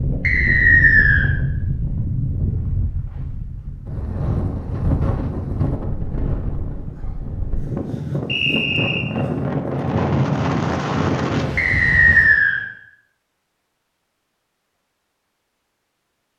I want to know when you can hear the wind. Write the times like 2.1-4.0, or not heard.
0.0-12.4.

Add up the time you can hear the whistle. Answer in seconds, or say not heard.
3 s.